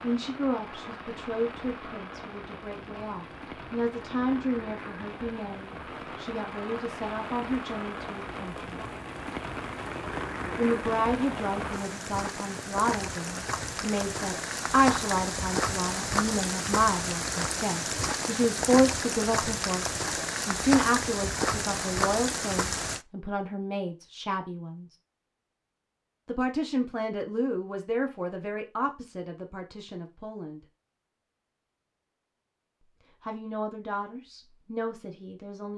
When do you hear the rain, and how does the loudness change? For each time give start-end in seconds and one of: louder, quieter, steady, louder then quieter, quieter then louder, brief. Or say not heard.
0.0-23.1 louder.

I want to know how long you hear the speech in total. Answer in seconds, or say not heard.
30 s.